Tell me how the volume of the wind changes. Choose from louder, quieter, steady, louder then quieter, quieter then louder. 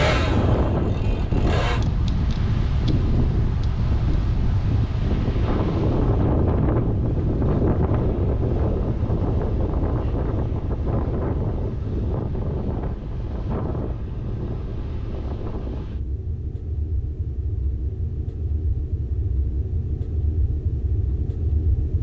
quieter.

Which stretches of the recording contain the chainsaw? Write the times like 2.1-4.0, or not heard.
0.0-1.8.